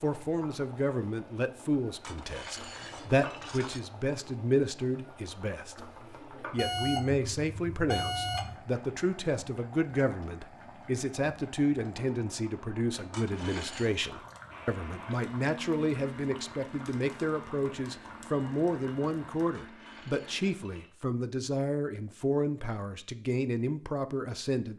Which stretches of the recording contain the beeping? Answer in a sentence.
The beeping can be heard from 6.5 to 8.6 s.